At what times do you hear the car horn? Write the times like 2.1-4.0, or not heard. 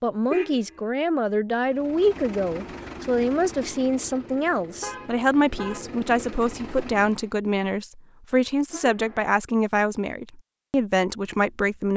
0.3-0.8, 4.8-5.9, 8.7-9.3.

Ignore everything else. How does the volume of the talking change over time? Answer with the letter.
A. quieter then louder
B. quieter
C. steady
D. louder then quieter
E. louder
C.